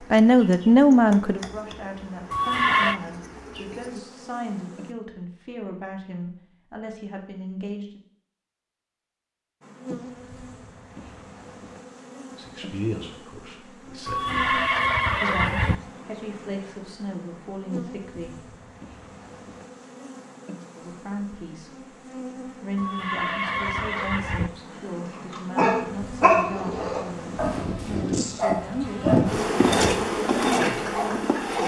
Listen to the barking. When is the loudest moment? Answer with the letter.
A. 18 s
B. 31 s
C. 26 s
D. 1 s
C.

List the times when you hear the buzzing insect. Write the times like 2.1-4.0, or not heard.
0.0-5.0, 9.6-31.6.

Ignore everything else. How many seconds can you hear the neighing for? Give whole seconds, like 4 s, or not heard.
4 s.